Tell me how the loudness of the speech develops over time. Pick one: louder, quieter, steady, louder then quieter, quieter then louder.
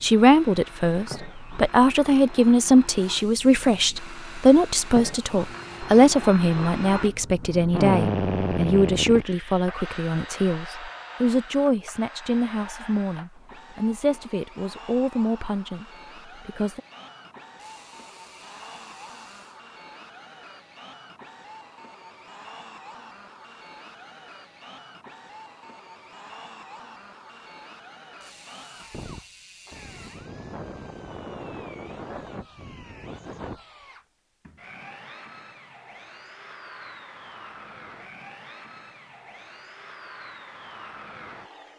quieter.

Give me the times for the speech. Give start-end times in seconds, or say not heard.
0.0-16.8.